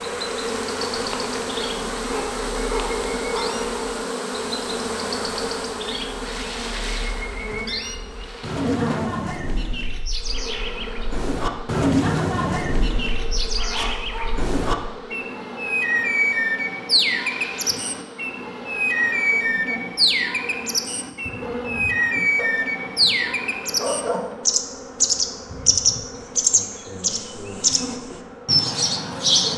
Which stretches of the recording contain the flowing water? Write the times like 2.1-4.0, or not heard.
not heard.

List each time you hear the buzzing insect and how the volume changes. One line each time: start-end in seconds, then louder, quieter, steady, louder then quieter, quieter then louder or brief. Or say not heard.
0.0-29.5 quieter.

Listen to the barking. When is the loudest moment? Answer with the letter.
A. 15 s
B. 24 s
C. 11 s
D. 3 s
B.